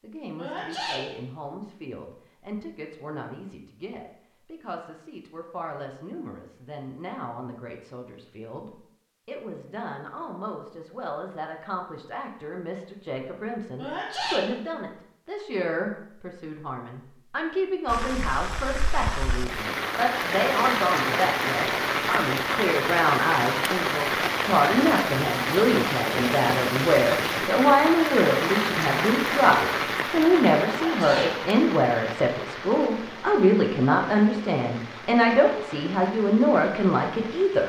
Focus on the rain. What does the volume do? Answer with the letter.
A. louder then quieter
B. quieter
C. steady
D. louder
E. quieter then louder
B.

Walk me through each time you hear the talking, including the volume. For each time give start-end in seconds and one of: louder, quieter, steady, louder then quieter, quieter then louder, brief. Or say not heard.
0.0-37.6 louder.